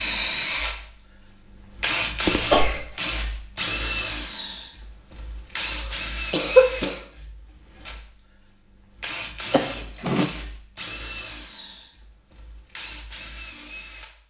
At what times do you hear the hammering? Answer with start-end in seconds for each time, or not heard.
not heard.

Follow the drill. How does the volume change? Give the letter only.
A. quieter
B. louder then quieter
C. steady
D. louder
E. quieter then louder
A.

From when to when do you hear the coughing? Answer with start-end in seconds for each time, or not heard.
2.2-2.9, 5.6-7.0, 9.5-10.3.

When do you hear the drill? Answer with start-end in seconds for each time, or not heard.
0.0-14.2.